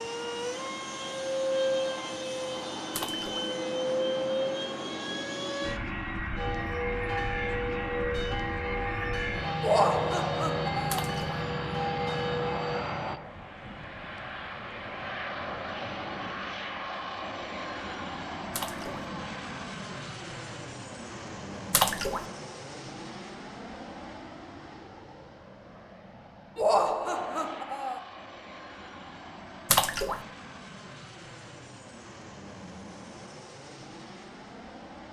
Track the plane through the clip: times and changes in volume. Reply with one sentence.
You can hear the plane from 0.0 to 35.0 s, getting quieter.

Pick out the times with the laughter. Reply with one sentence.
The laughter can be heard from 9.6 to 11.1 s and from 26.6 to 28.0 s.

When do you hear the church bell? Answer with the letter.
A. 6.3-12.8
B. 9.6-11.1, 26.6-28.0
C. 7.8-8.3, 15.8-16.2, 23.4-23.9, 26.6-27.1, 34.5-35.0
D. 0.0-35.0
A.